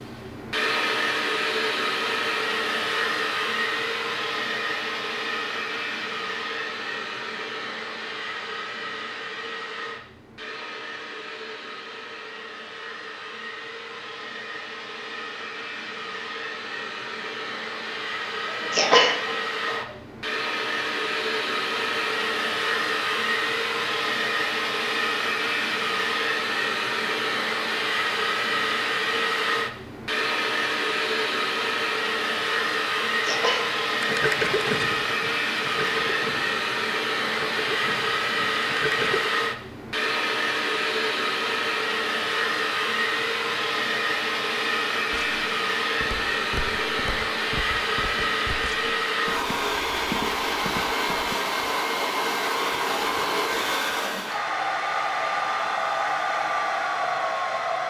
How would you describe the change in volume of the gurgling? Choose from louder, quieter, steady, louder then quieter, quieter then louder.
quieter.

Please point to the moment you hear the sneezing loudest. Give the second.
19 s.